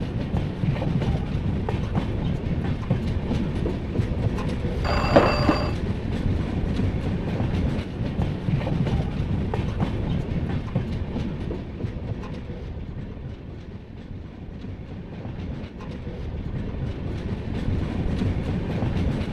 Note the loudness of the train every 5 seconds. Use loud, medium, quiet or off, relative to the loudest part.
loud, loud, medium, loud.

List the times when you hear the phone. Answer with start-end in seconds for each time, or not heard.
4.8-5.8.